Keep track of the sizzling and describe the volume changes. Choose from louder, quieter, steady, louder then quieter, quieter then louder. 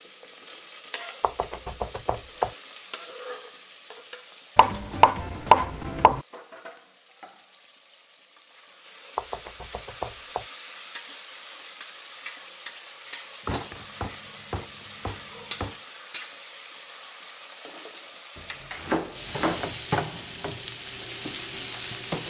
quieter then louder.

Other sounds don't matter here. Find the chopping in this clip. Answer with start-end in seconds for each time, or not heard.
1.2-2.5, 4.5-6.2, 9.2-10.4, 13.4-15.8, 18.4-19.6.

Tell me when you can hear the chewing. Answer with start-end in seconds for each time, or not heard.
not heard.